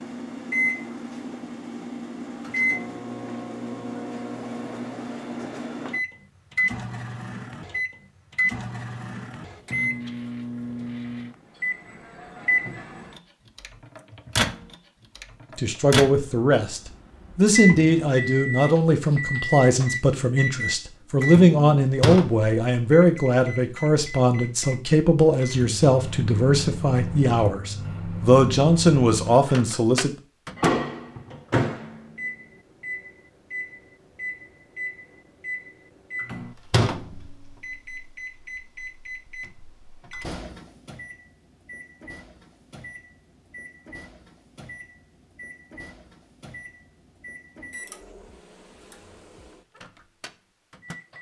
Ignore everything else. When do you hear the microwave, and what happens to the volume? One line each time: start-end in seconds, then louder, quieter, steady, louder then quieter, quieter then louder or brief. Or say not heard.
0.0-51.1 quieter.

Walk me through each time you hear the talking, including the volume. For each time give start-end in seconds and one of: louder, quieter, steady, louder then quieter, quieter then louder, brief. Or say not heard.
15.6-30.1 steady.